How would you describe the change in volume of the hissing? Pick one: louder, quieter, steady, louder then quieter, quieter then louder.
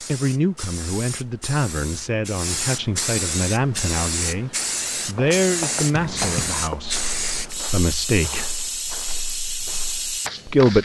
louder.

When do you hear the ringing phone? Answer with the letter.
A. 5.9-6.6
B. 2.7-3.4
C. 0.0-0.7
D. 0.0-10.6
A.